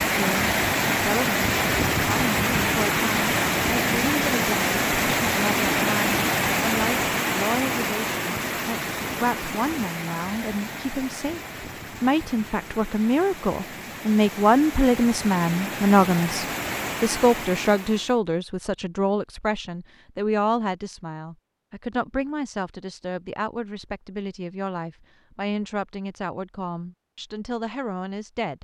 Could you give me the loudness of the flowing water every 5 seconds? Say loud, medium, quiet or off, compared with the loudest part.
loud, loud, quiet, medium, off, off.